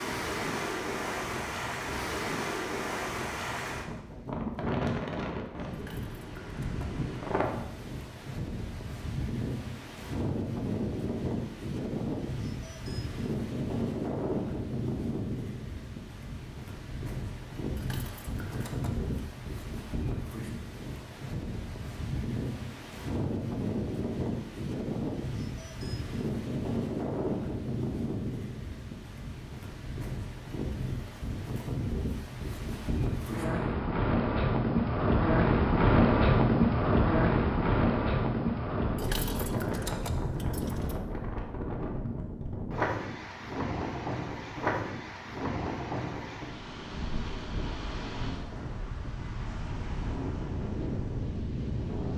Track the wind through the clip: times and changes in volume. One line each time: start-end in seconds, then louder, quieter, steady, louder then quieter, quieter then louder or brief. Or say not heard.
0.0-52.1 louder then quieter.